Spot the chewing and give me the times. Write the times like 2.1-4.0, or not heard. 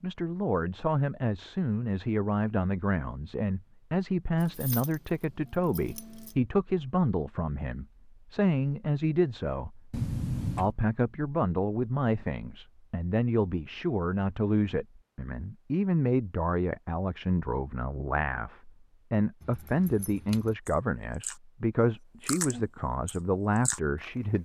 20.6-24.4.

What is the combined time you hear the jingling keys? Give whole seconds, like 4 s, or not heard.
4 s.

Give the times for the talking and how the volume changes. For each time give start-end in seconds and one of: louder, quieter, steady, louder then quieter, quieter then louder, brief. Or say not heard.
0.0-24.4 steady.